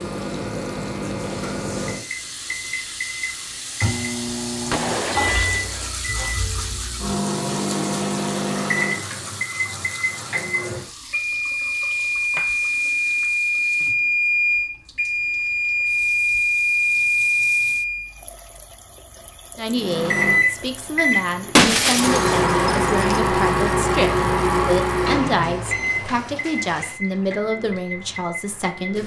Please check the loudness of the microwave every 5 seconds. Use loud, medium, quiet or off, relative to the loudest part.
medium, medium, loud, loud, loud, medium.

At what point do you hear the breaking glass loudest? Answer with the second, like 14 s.
22 s.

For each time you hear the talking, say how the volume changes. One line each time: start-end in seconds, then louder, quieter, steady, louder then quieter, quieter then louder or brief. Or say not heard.
19.6-29.0 steady.